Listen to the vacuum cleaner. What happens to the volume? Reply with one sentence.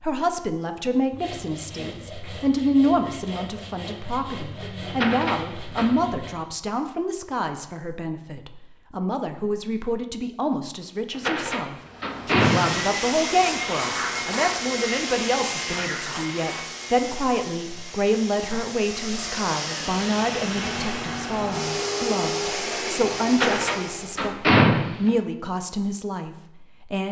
The volume of the vacuum cleaner goes down, then up.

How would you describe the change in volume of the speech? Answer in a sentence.
The loudness of the speech stays about the same.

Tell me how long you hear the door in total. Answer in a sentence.
The door can be heard for 5 seconds in total.